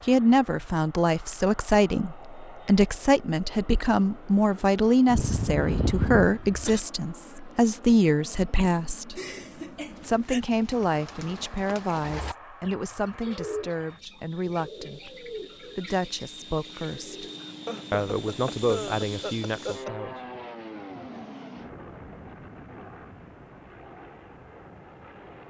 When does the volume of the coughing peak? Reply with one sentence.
The volume of the coughing peaks at 6 seconds.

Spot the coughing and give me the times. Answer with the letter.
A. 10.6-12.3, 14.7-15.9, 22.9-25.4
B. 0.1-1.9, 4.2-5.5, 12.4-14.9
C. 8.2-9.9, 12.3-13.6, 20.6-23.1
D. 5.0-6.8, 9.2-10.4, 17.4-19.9
D.